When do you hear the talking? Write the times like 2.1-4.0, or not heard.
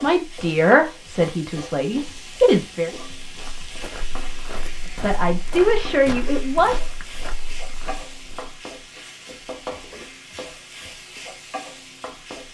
0.0-2.9, 5.0-6.8.